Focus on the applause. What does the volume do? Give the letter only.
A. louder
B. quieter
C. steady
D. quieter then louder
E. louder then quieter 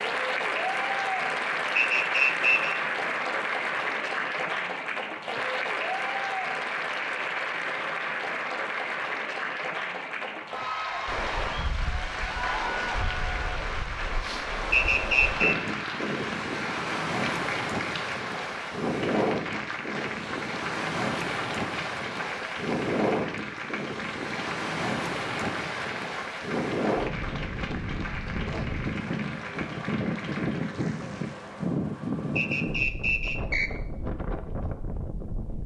B.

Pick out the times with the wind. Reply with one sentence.
The wind can be heard from 11.1 to 35.6 s.